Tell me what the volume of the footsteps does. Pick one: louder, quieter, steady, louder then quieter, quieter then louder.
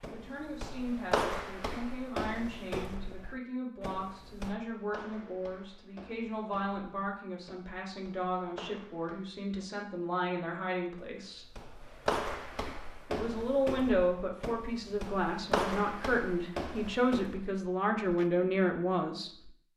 quieter then louder.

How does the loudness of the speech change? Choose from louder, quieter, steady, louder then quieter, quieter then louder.
louder.